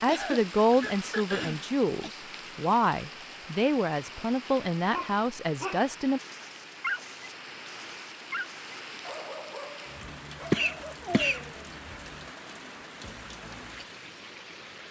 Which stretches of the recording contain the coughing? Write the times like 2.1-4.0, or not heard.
0.1-2.1, 10.5-11.4.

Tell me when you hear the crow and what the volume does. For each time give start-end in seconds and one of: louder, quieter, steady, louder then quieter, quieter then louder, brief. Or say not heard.
not heard.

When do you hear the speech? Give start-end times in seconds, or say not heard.
0.0-6.2.